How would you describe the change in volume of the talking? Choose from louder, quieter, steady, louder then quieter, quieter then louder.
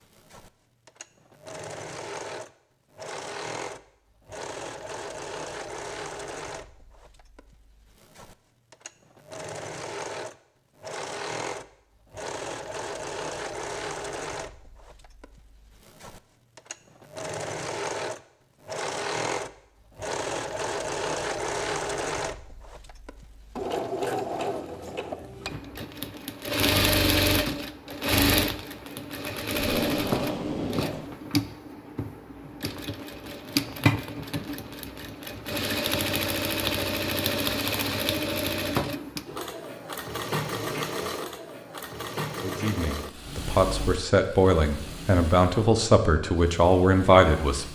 louder.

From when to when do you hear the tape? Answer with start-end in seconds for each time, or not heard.
29.6-31.1.